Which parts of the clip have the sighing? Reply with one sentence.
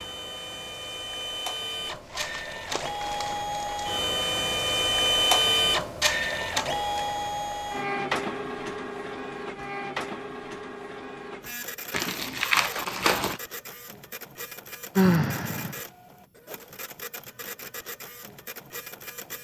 The sighing can be heard from 14.9 to 15.8 s.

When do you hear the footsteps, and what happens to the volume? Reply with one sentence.
You can't hear the footsteps here.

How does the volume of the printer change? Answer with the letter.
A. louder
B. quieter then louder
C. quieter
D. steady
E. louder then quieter
E.